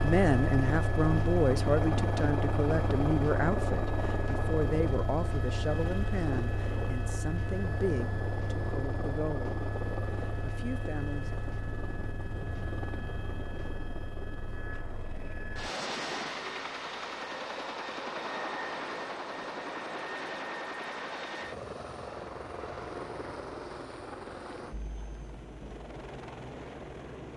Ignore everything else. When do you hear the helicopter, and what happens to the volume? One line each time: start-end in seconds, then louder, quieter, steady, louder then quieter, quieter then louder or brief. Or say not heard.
0.0-27.3 quieter.